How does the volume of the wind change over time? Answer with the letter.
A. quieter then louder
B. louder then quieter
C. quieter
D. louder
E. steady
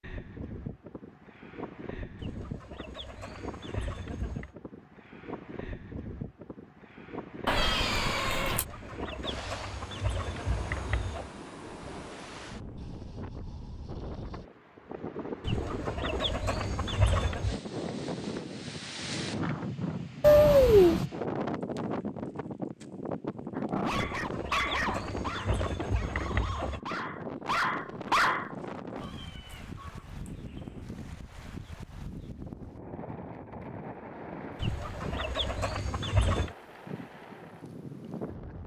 B.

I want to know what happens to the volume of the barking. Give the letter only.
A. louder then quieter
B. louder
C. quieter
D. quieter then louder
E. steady
D.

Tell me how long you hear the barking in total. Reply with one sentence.
You can hear the barking for 5 seconds altogether.